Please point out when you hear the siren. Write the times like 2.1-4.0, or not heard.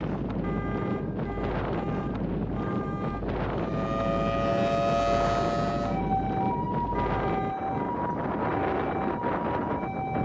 3.5-10.2.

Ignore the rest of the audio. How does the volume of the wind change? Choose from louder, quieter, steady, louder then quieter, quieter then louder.
steady.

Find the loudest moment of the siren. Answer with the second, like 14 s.
5 s.